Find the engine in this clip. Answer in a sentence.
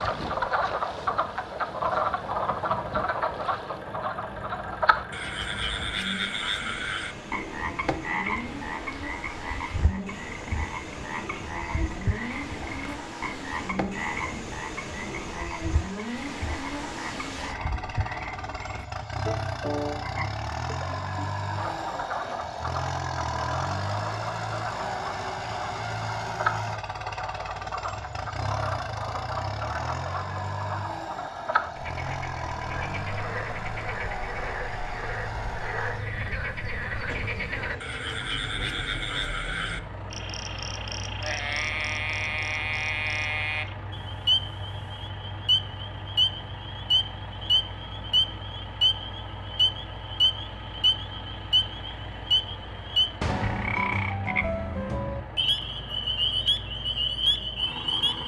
You can hear the engine from 0.0 to 58.2 s.